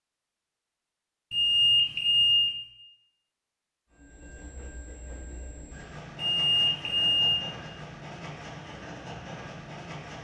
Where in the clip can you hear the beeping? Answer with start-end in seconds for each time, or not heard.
1.3-2.5, 6.3-7.4.